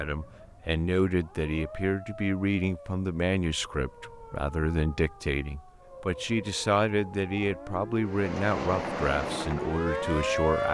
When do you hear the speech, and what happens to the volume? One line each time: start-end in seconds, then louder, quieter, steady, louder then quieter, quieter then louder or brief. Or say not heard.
0.0-10.6 steady.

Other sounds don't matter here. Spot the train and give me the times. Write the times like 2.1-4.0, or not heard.
8.0-10.5.